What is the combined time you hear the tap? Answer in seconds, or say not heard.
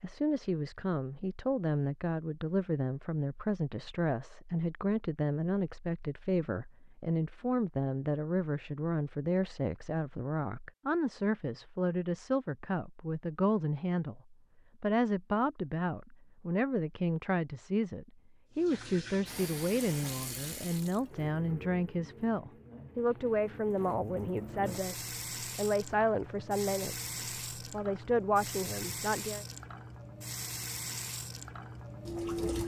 14 s.